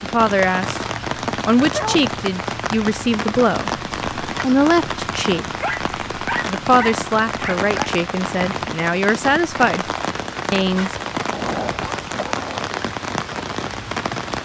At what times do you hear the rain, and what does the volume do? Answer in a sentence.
The rain can be heard from 0.0 to 14.4 s, at a steady volume.